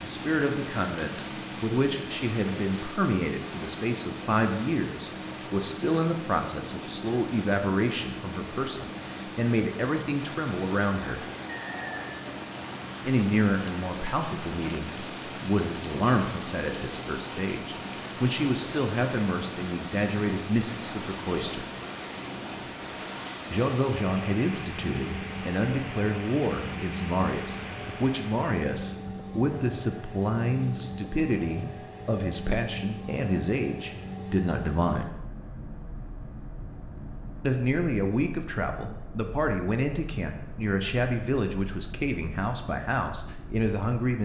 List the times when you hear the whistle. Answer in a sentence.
You can hear the whistle from 11.5 to 12.2 s.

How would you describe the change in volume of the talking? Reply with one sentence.
The loudness of the talking stays about the same.